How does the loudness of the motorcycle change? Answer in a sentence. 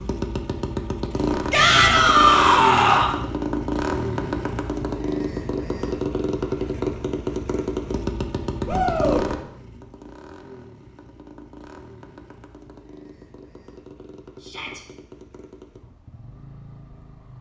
The volume of the motorcycle goes down.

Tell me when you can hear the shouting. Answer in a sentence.
The shouting can be heard from 1.5 to 3.1 s, from 8.7 to 9.2 s and from 14.4 to 14.8 s.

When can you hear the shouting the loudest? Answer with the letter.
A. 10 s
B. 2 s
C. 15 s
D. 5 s
B.